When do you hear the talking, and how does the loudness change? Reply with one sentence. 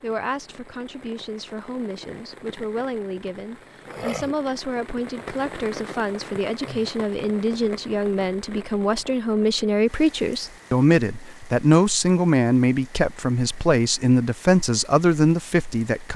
You can hear the talking from 0.0 to 16.1 s, getting louder.